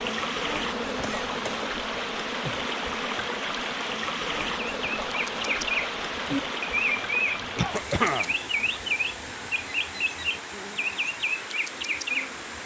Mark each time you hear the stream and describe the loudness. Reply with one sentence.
You can hear the stream from 0.0 to 12.6 s, getting quieter.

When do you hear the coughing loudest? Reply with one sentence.
The loudest moment of the coughing is at 8 seconds.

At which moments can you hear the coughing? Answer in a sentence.
The coughing can be heard from 1.0 to 1.6 s and from 7.5 to 8.3 s.